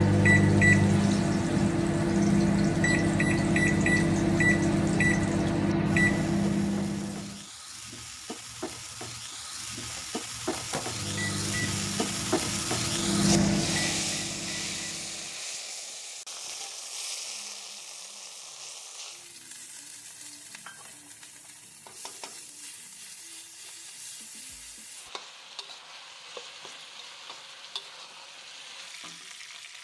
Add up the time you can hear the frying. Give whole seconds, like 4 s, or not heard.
30 s.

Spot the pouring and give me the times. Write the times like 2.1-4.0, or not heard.
not heard.